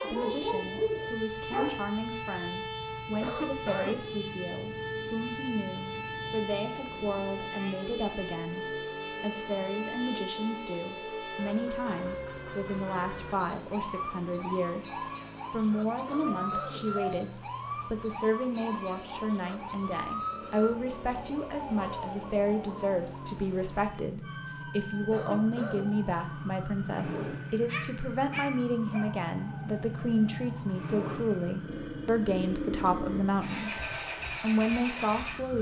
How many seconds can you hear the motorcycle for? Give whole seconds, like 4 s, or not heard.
35 s.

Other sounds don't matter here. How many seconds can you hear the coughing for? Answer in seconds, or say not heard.
3 s.